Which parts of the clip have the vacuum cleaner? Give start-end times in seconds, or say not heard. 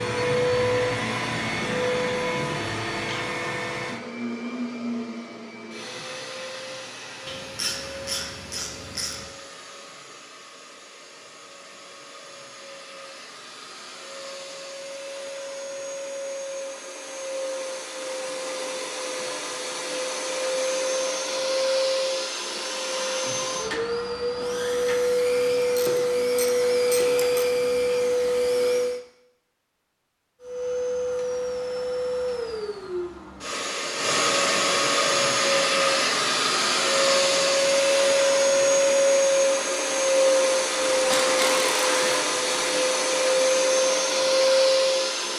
0.0-29.0, 30.4-45.3.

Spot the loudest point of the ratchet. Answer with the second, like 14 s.
41 s.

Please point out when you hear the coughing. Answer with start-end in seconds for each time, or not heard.
not heard.